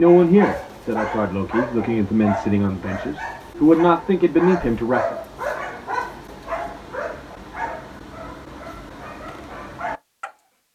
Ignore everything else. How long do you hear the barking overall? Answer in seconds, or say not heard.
10 s.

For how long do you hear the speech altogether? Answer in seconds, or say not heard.
5 s.